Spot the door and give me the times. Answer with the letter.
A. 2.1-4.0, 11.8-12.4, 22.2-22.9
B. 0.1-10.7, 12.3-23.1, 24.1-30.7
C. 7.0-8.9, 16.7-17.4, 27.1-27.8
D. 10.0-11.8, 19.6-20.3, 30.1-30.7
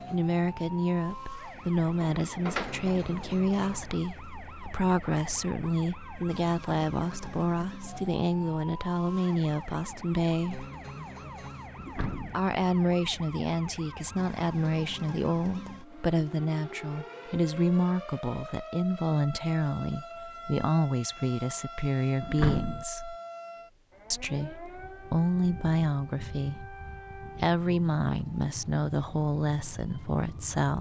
A.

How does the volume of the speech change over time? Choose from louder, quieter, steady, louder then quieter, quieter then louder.
steady.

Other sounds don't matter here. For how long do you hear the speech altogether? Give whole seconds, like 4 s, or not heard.
28 s.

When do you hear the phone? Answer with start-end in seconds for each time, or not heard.
not heard.